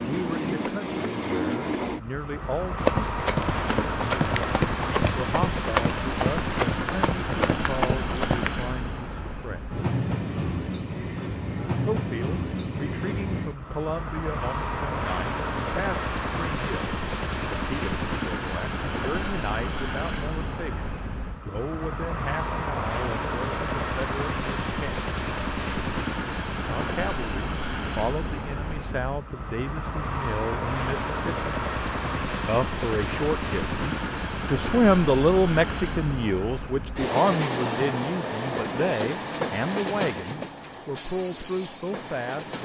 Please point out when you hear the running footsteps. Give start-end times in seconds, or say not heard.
2.8-8.5.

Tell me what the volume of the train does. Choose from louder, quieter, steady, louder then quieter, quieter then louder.
steady.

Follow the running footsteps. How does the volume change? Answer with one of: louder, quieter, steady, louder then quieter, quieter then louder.
steady.